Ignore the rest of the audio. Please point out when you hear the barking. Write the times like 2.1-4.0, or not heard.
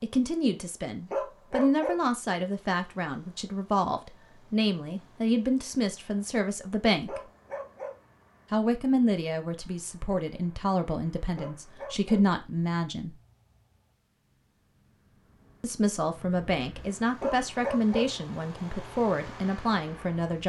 1.1-2.0, 7.0-8.0, 11.3-12.2, 17.2-18.1.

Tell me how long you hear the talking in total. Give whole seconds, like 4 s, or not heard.
17 s.